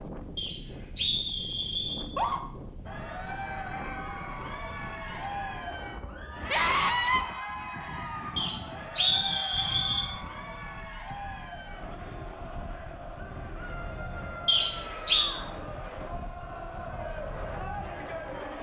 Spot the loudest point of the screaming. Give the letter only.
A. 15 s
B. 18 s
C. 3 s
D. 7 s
D.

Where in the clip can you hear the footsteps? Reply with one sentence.
The footsteps can't be heard in this clip.